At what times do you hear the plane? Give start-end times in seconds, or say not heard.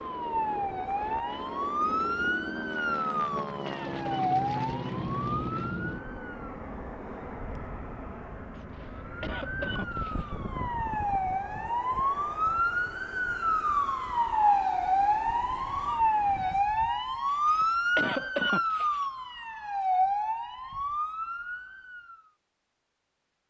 0.0-16.6.